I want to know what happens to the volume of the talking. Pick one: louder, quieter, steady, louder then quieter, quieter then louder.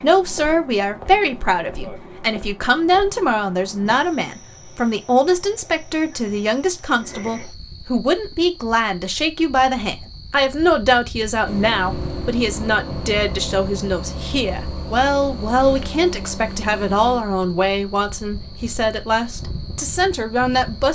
steady.